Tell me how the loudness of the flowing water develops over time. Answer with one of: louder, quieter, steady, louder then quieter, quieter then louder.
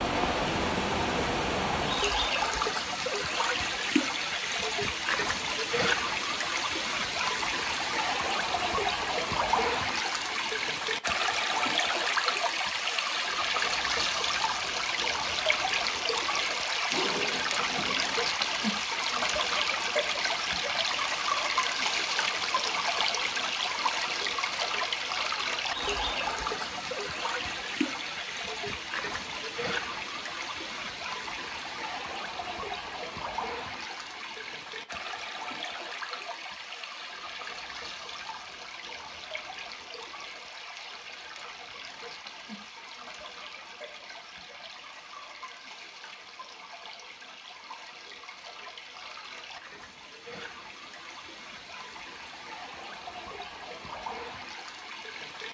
quieter.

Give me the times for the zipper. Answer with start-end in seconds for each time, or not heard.
16.9-18.1.